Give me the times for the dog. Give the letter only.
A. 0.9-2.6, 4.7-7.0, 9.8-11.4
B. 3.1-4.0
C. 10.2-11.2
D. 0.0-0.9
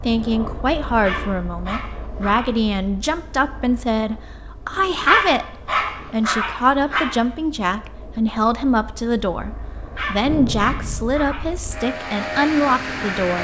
A.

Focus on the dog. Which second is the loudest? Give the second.
5 s.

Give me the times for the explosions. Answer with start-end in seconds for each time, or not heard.
10.2-11.2.